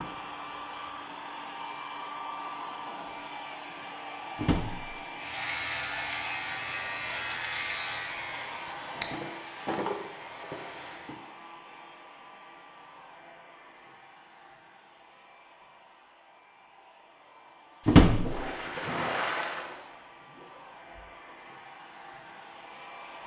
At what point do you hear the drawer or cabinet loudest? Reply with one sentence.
The volume of the drawer or cabinet peaks at 18 seconds.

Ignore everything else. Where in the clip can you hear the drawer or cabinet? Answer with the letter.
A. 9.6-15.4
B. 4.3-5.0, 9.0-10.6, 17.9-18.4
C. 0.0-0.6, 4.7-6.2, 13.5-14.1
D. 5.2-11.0
B.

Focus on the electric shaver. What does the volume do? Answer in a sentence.
The loudness of the electric shaver goes down.